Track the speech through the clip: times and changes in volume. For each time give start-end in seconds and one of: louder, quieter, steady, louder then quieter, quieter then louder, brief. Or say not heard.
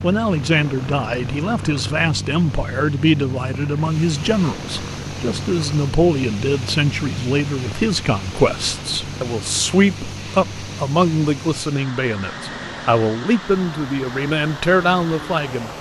0.0-15.7 steady.